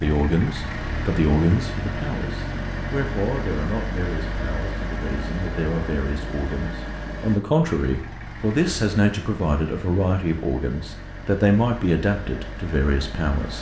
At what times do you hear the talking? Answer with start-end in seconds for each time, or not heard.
0.0-13.5.